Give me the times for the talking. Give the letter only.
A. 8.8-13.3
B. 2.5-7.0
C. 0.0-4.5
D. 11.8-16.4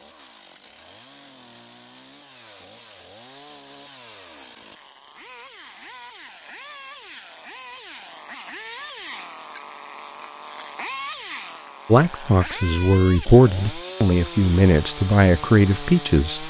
D.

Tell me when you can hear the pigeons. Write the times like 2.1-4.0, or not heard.
not heard.